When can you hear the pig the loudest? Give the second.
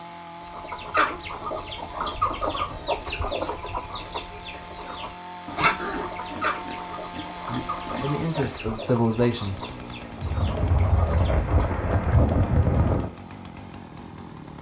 6 s.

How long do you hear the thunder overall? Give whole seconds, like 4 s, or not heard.
3 s.